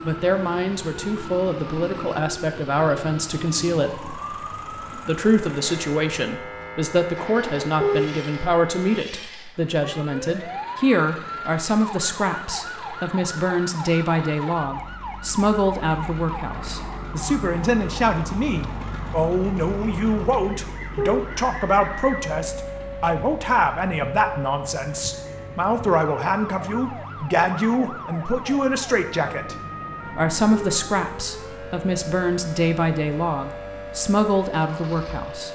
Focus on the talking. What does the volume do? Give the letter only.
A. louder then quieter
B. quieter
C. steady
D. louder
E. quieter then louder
C.